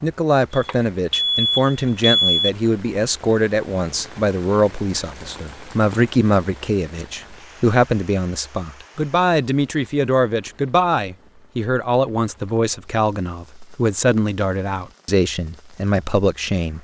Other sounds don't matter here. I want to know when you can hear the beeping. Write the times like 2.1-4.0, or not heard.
0.5-2.5.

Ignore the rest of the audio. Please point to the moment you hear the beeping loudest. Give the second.
2 s.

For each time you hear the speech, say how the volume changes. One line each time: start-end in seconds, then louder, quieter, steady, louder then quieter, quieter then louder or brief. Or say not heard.
0.0-16.7 steady.